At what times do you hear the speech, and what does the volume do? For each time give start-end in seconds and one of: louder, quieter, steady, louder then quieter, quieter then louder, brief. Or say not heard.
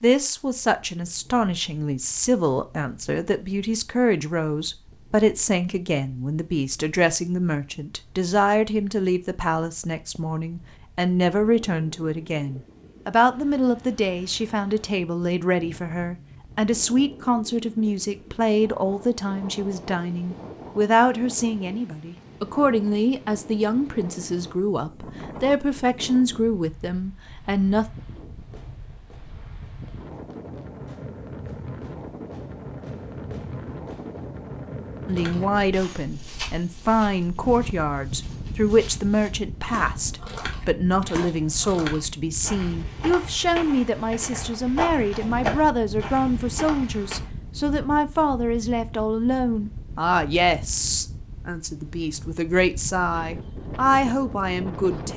0.0-27.9 steady
35.0-55.1 steady.